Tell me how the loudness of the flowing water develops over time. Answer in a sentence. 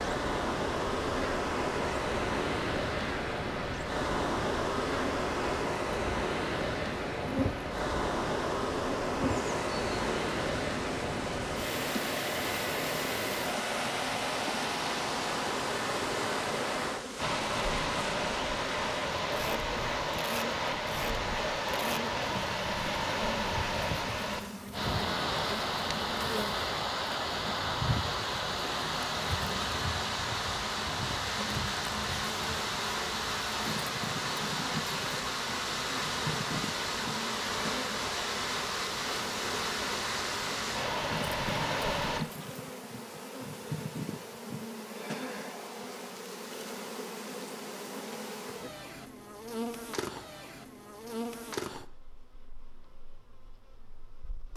The volume of the flowing water stays about the same.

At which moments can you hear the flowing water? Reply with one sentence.
The flowing water can be heard from 0.0 to 42.2 s.